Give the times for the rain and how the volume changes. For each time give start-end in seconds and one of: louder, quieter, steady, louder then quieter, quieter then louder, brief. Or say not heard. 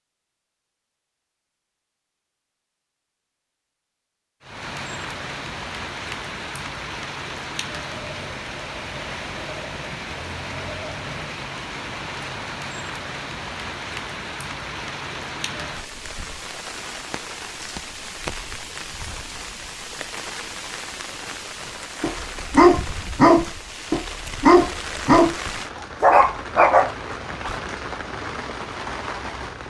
4.4-29.6 steady.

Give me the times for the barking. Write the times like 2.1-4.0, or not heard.
22.0-25.4, 26.0-27.6.